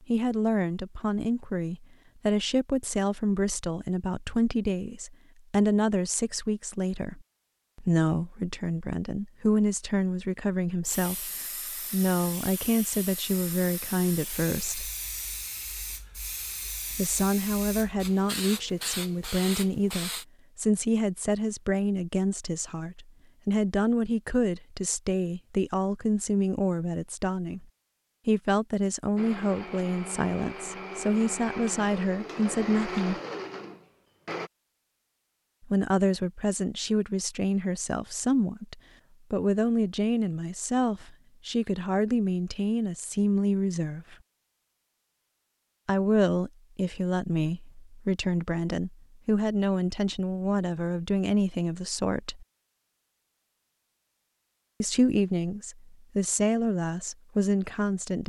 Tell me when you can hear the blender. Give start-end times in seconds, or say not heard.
29.1-34.5.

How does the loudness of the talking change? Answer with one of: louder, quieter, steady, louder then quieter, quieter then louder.
steady.